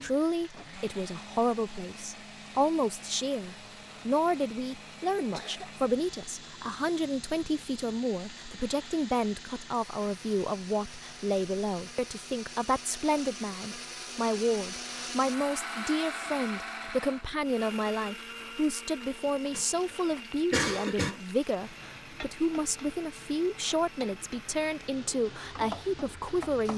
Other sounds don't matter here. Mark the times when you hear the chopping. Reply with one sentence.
You can't hear the chopping here.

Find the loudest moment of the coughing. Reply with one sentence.
The loudest moment of the coughing is at 21 seconds.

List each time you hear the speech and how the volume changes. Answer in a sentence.
You can hear the speech from 0.0 to 26.7 s, at a steady volume.